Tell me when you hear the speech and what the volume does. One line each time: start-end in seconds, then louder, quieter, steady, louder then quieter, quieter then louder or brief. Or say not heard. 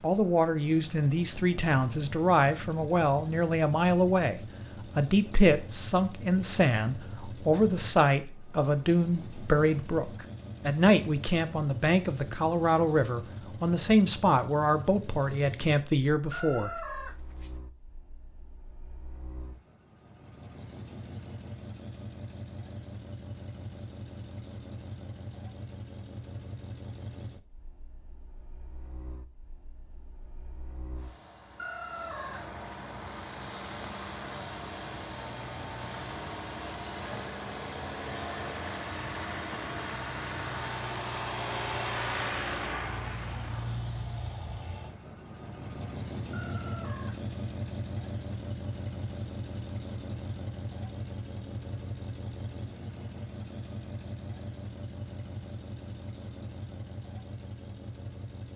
0.0-16.7 steady.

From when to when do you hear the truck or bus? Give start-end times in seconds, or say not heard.
0.0-58.5.